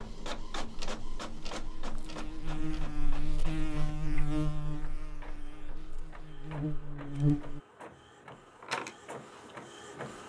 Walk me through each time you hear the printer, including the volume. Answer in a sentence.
You can hear the printer from 0.0 to 10.2 s, getting quieter then louder.